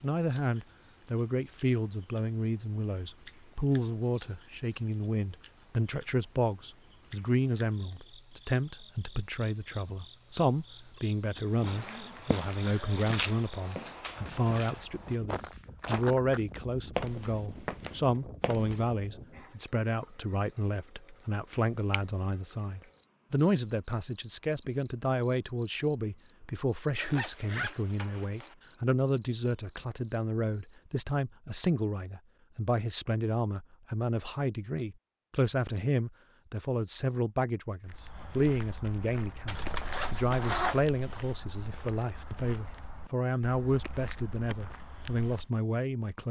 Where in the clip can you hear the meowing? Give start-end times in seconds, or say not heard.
not heard.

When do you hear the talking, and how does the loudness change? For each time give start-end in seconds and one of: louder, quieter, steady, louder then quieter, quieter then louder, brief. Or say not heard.
0.0-46.2 steady.